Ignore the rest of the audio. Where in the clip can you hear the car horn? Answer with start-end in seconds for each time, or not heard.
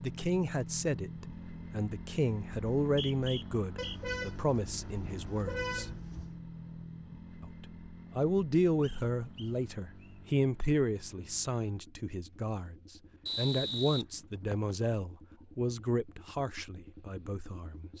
3.8-6.3.